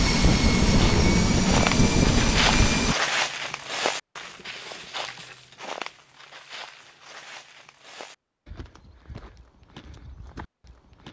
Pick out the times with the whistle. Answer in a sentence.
You can't hear the whistle here.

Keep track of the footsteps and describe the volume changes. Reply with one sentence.
The loudness of the footsteps goes down.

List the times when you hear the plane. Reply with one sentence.
The plane can be heard from 0.0 to 3.0 s.